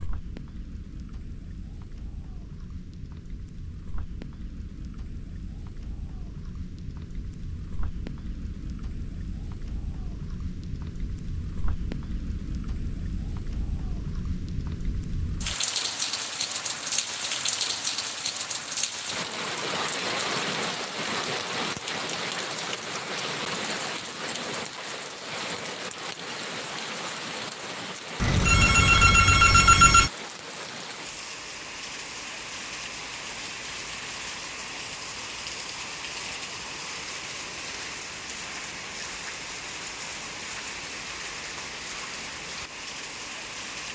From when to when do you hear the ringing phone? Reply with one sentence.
The ringing phone can be heard from 28.2 to 30.1 s.